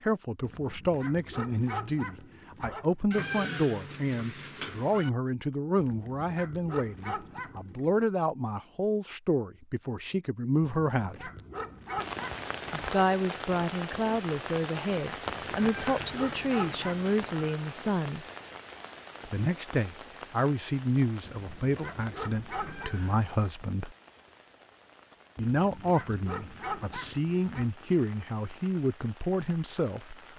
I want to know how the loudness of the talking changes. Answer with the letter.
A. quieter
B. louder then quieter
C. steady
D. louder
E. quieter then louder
C.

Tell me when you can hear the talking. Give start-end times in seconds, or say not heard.
0.0-11.3, 12.7-18.2, 19.2-23.9, 25.4-30.3.